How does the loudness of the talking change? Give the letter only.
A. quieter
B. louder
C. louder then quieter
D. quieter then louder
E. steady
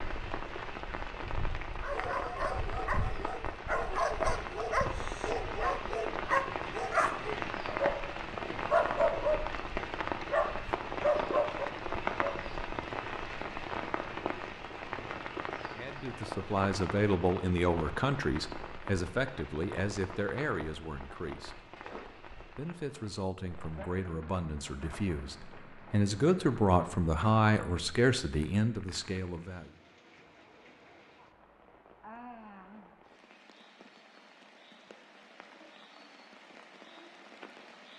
D.